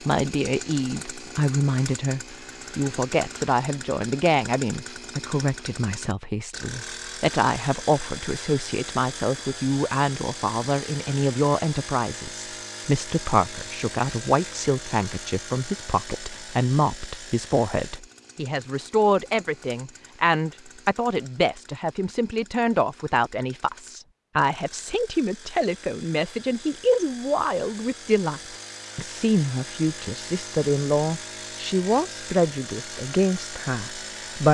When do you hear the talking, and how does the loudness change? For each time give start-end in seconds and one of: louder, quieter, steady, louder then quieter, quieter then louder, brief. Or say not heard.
0.1-34.4 steady.